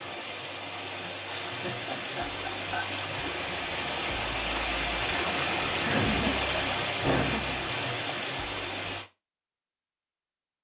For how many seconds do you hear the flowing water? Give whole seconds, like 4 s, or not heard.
9 s.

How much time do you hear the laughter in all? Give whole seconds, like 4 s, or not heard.
4 s.